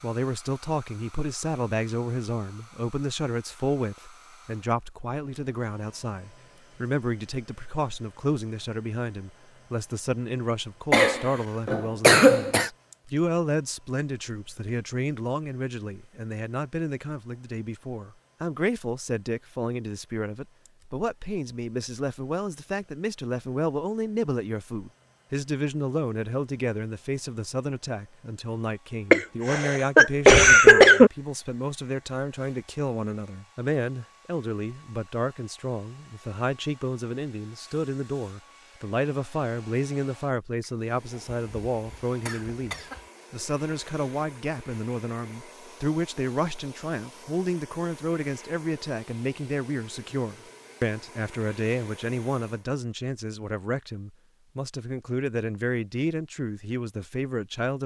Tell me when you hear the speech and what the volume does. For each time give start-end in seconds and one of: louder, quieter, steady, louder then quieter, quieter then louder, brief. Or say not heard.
0.0-57.8 steady.